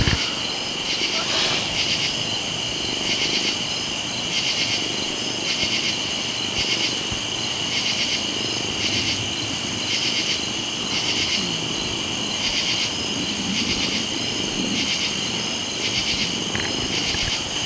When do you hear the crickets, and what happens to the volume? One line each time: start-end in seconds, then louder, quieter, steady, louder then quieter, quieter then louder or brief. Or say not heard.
0.0-17.6 steady.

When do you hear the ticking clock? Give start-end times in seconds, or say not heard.
not heard.